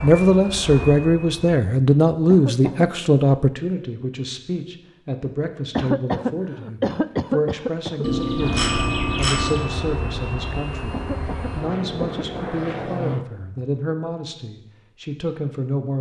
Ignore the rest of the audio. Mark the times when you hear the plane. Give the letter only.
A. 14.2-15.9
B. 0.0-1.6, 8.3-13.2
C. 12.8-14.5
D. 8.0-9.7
B.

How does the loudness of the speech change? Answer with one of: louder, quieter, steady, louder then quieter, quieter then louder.
quieter.